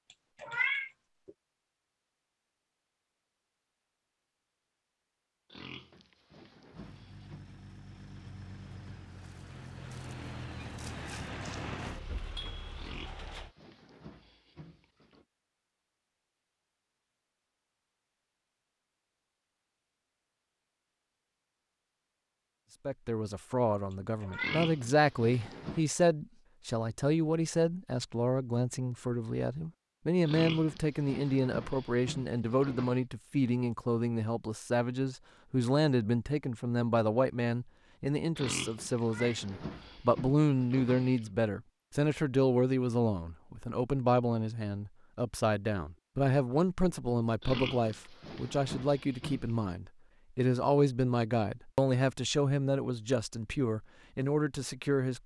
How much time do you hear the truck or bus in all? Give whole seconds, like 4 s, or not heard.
7 s.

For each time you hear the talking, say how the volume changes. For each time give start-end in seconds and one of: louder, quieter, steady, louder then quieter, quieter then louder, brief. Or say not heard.
22.9-55.2 steady.